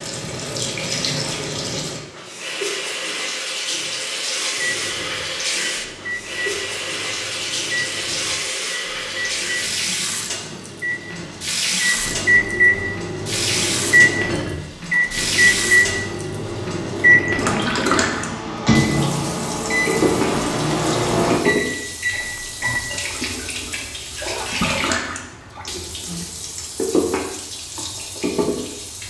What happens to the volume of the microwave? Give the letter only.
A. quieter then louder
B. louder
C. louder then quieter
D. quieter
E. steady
B.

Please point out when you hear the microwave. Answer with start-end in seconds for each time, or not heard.
4.5-22.8.